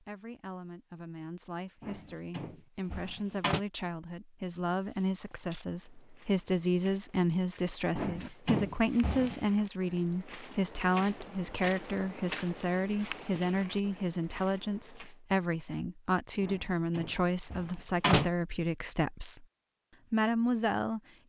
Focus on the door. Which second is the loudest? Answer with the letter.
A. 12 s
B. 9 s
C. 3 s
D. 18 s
D.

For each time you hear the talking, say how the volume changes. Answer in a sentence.
The talking can be heard from 0.0 to 19.4 s, getting louder; and briefly from 20.1 to 21.0 s.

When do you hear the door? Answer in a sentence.
The door can be heard from 1.8 to 3.6 s, from 8.0 to 9.5 s and from 16.4 to 18.3 s.